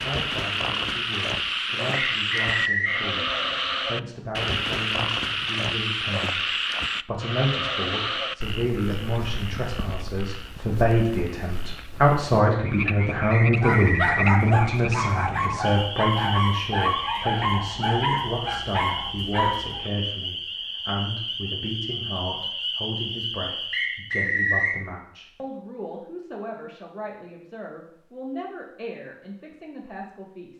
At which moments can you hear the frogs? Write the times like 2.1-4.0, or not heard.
0.0-24.1.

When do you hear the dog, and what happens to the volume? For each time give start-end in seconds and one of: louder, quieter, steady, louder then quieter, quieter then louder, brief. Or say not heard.
13.6-19.9 steady.